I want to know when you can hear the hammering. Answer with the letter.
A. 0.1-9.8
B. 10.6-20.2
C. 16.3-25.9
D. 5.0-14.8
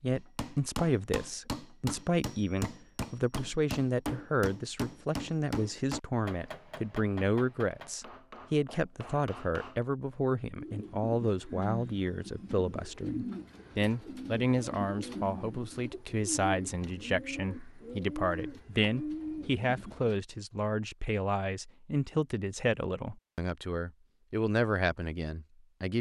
A.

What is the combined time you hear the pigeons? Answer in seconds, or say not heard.
10 s.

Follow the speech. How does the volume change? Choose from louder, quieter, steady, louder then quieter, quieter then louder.
steady.